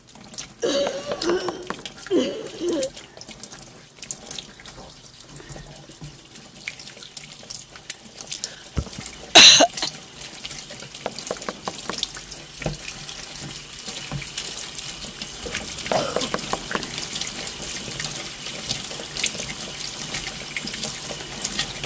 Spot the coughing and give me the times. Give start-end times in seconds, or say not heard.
0.6-2.9, 8.3-9.9, 15.4-16.3.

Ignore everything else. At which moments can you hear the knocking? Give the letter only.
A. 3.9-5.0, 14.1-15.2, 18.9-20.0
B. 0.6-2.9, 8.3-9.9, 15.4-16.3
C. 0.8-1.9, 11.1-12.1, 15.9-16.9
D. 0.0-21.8
C.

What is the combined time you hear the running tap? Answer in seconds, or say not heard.
22 s.